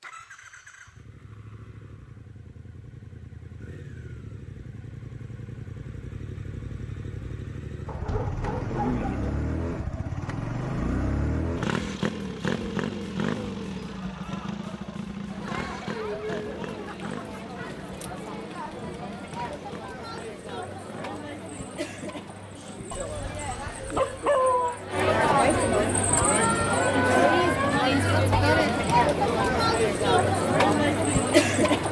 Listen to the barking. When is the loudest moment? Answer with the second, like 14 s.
24 s.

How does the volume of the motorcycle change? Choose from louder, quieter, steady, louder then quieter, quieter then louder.
louder then quieter.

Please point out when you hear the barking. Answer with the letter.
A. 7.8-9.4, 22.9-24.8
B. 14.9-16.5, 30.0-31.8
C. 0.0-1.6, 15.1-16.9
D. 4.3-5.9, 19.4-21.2
A.